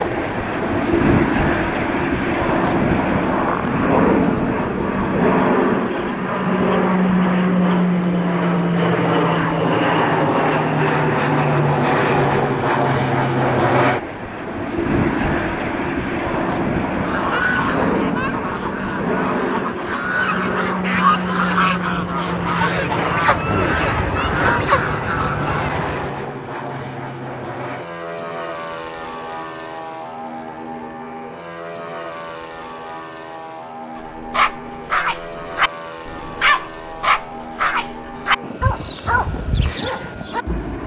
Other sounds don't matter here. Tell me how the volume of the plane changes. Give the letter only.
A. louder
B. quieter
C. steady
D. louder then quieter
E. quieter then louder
B.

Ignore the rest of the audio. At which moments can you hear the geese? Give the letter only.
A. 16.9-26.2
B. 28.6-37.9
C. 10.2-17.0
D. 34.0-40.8
A.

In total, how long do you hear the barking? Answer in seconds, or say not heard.
7 s.